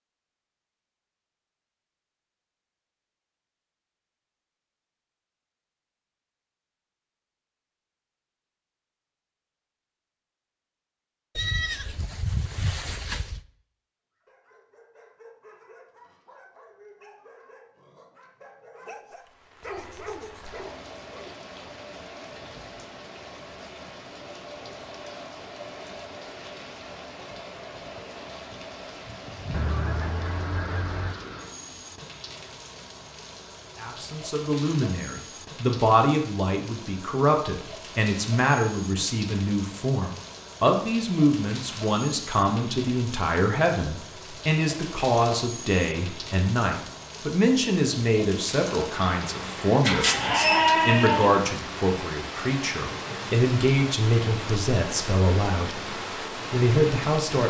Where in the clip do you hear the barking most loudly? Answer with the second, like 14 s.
20 s.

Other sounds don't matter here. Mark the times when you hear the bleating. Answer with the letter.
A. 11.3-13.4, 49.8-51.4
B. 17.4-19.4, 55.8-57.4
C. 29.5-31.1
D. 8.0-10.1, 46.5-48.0
A.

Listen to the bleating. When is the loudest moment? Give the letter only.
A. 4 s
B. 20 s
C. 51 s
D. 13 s
C.